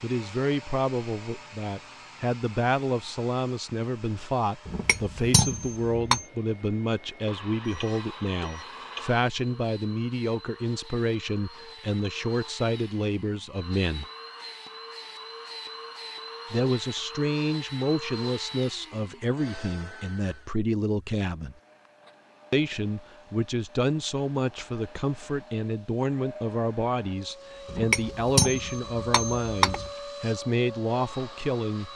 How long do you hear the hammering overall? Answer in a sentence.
You can hear the hammering for 4 seconds altogether.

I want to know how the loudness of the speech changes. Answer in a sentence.
The volume of the speech stays about the same.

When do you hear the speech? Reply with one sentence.
You can hear the speech from 0.0 to 14.1 s, from 16.5 to 21.6 s and from 22.5 to 31.9 s.